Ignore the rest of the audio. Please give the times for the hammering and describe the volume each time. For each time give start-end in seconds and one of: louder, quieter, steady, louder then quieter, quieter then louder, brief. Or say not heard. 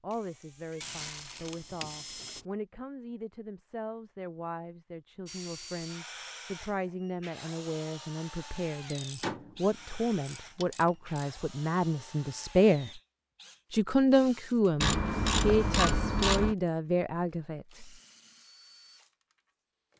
not heard.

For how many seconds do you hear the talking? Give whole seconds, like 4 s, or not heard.
17 s.